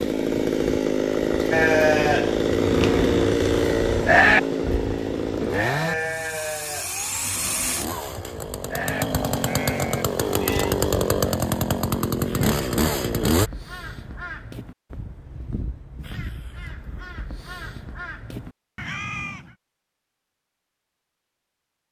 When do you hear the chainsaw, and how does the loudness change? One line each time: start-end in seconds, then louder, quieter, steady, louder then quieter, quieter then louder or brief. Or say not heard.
0.0-13.5 quieter then louder.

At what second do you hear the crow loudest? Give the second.
19 s.